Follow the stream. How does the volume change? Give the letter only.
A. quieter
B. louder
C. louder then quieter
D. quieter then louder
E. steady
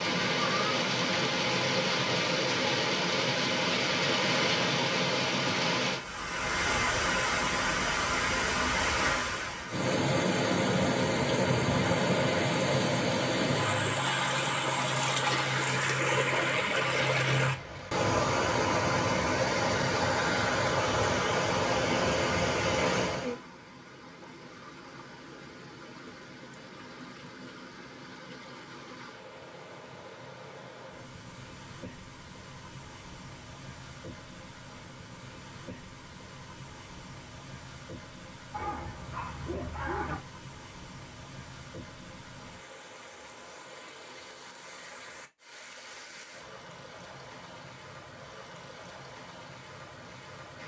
A.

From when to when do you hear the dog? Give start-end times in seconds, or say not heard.
38.5-40.2.